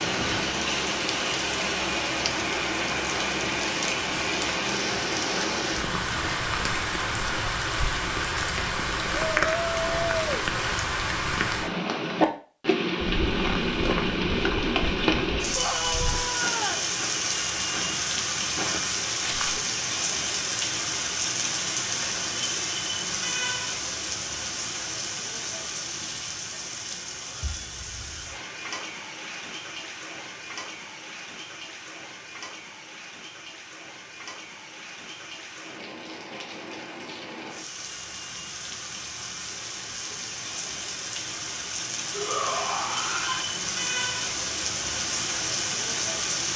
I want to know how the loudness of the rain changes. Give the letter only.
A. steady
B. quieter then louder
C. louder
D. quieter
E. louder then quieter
B.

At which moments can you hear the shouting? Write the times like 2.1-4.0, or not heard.
9.3-10.3, 15.6-16.9, 42.1-43.5.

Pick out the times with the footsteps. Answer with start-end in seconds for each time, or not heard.
13.2-19.6.